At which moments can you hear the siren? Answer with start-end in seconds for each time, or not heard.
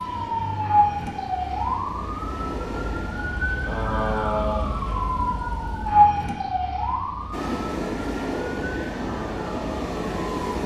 0.0-10.6.